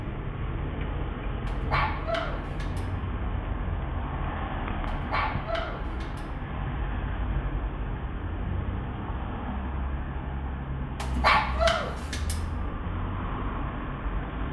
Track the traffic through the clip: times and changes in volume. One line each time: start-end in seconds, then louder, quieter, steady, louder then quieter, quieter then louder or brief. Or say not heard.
0.0-14.4 steady.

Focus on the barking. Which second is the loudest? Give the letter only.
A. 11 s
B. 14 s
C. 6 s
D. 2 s
A.